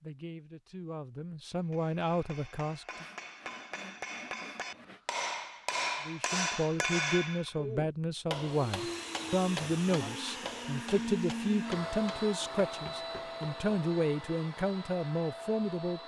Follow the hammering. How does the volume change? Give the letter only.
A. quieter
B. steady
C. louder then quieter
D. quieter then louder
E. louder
C.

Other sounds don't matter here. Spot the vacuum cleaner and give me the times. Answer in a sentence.
The vacuum cleaner can be heard from 8.3 to 16.0 s.